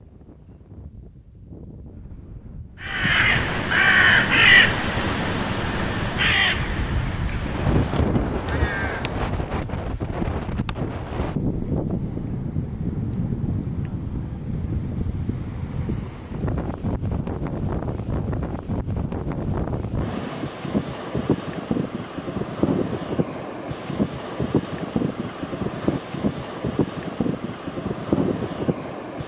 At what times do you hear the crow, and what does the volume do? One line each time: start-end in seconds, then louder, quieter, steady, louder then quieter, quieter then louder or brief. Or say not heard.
2.8-9.3 quieter.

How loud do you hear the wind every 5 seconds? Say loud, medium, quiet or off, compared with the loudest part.
quiet, loud, loud, loud, loud, loud.